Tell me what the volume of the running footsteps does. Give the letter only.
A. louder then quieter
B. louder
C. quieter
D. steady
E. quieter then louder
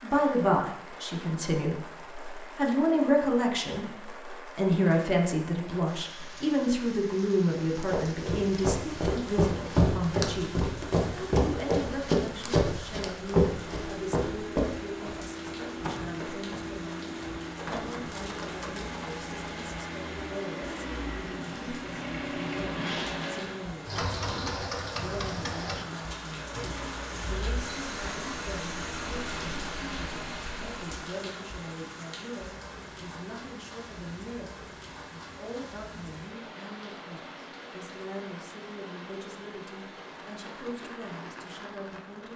C.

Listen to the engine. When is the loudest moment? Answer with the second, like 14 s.
23 s.